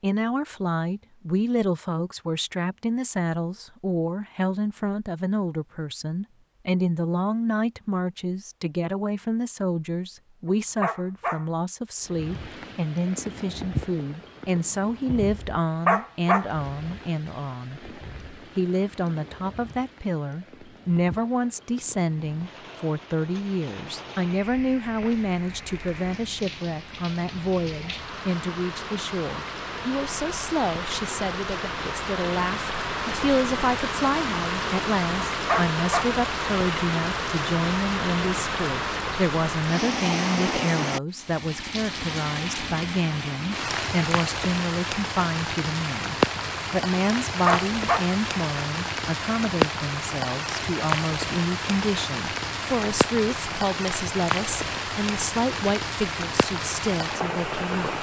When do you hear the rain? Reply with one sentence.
The rain can be heard from 12.0 to 57.9 s.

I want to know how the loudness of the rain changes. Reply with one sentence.
The volume of the rain goes up.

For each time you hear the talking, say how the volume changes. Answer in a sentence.
You can hear the talking from 0.0 to 57.9 s, at a steady volume.